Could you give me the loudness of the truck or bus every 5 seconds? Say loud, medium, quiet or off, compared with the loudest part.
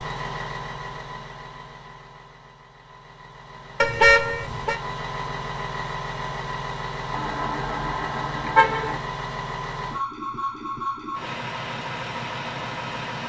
medium, loud, loud.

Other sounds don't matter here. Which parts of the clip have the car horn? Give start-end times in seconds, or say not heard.
3.8-4.8, 7.1-9.0.